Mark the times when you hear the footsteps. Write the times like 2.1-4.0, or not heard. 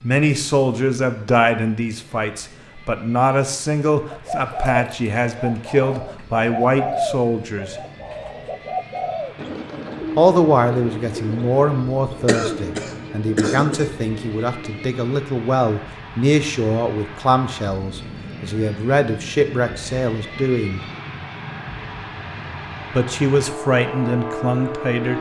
not heard.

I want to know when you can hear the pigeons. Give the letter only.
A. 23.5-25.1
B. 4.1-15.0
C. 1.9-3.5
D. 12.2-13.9
B.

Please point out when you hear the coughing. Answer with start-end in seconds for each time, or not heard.
12.2-13.9.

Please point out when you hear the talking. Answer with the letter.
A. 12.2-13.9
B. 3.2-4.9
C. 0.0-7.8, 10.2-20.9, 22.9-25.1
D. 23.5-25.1
C.